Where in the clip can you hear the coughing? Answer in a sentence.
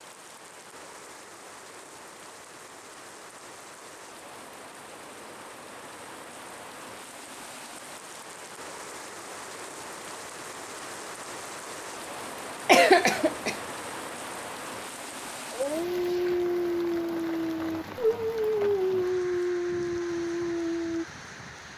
You can hear the coughing from 12.7 to 13.6 s.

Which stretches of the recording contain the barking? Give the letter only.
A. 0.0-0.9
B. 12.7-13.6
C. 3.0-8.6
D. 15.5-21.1
D.